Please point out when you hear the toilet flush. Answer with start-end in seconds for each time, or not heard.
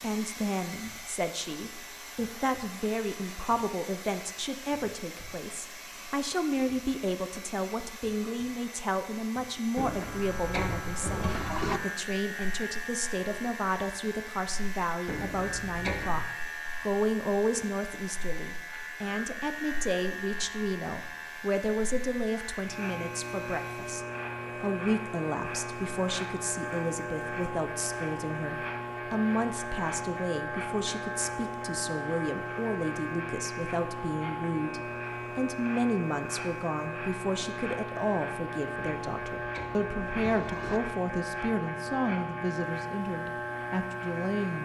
9.8-11.8, 15.1-16.3, 38.8-40.8.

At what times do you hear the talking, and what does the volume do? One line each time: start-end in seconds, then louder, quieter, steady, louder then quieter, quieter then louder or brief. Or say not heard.
0.0-44.6 steady.